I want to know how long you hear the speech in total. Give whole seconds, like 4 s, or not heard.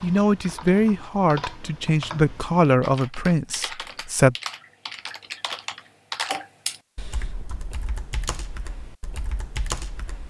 4 s.